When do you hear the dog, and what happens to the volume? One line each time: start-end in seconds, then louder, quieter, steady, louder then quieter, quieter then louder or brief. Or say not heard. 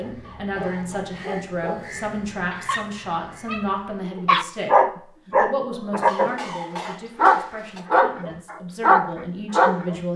0.0-10.0 louder.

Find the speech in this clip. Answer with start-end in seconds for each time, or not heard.
0.0-10.1.